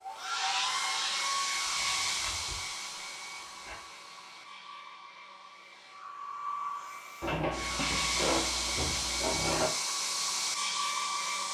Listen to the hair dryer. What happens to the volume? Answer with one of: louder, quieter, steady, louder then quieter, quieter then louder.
quieter then louder.